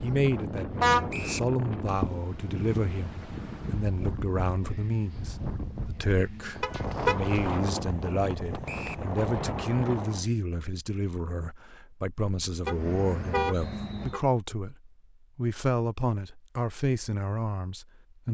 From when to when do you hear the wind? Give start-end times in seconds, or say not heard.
0.0-10.2.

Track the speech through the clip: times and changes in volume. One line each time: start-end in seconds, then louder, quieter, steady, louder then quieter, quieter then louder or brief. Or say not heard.
0.0-18.2 steady.